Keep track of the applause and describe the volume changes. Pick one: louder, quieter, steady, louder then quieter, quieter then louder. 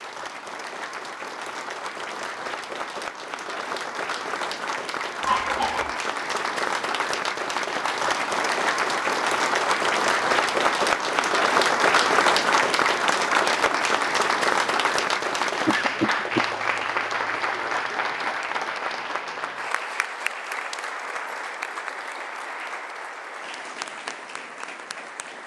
louder then quieter.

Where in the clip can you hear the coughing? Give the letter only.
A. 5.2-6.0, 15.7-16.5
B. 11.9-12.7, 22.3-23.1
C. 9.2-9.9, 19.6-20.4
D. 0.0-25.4
A.